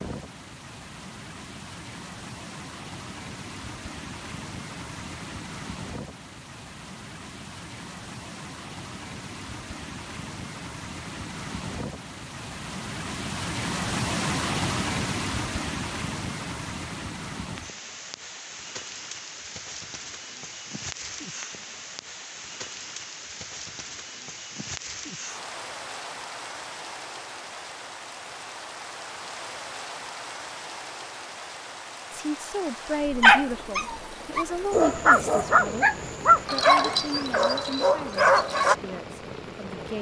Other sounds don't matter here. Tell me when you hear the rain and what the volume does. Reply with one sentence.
You can hear the rain from 0.0 to 39.9 s, getting louder then quieter.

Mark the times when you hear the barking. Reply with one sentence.
You can hear the barking from 33.2 to 38.8 s.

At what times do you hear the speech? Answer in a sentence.
The speech can be heard from 32.1 to 39.9 s.